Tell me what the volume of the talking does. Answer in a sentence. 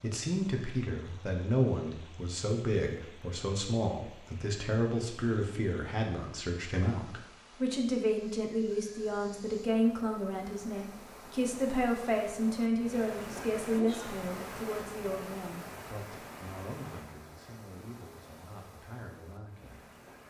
The volume of the talking goes down.